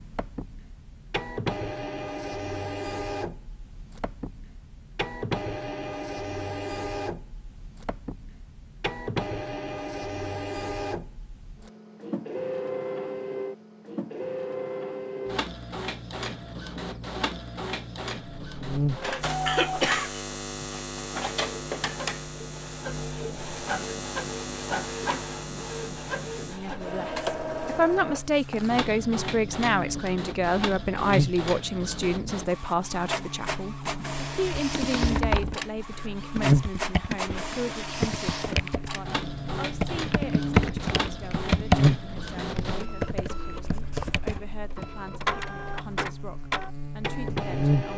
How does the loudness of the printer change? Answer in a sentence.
The volume of the printer stays about the same.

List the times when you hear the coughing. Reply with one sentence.
You can hear the coughing from 19.4 to 20.7 s.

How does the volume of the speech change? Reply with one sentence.
The volume of the speech goes down.